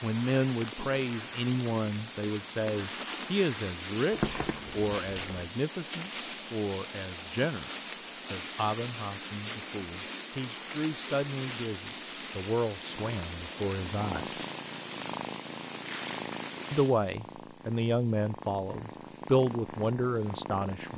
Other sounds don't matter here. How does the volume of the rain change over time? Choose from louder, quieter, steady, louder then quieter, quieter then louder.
quieter.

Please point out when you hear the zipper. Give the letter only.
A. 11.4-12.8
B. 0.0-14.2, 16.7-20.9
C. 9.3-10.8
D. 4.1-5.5
D.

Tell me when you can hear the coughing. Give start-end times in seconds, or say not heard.
not heard.